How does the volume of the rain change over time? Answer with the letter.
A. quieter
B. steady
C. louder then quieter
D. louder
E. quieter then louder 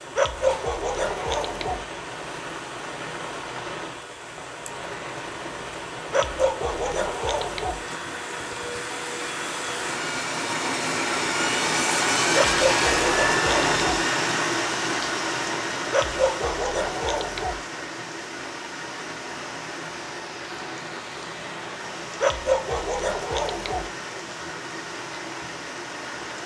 C.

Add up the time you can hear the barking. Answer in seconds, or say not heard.
8 s.